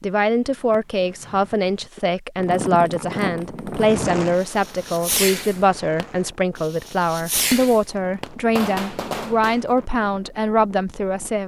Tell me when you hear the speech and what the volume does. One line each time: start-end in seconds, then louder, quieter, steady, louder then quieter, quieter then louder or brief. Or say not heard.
0.0-11.4 steady.